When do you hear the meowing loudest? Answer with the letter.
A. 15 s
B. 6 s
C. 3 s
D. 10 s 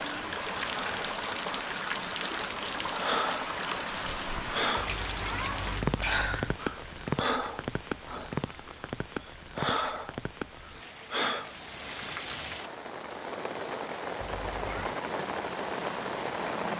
B.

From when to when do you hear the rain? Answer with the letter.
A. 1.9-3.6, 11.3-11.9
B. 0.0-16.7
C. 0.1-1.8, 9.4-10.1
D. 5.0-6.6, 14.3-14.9
B.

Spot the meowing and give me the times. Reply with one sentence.
The meowing can be heard from 5.0 to 6.6 s and from 14.3 to 14.9 s.